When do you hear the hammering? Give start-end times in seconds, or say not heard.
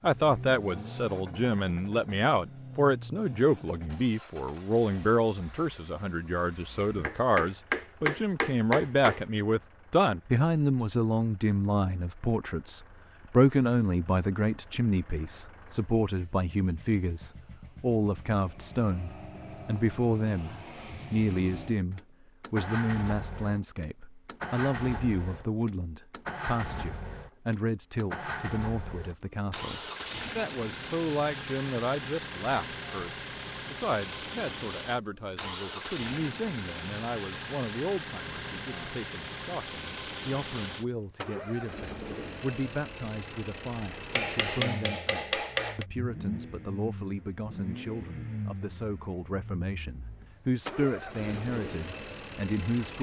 7.0-9.2, 44.1-45.9.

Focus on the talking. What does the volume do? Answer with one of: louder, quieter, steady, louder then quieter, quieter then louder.
quieter.